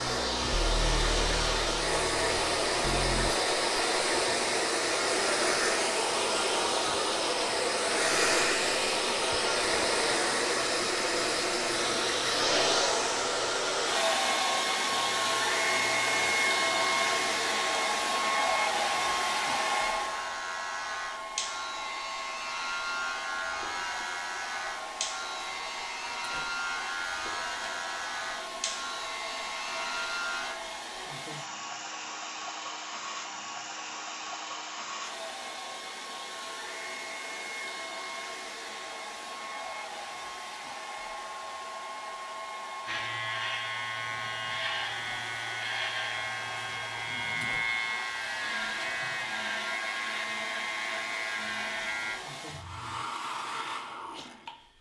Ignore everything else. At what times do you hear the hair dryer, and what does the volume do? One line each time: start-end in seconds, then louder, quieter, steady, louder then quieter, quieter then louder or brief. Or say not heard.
0.0-54.7 quieter.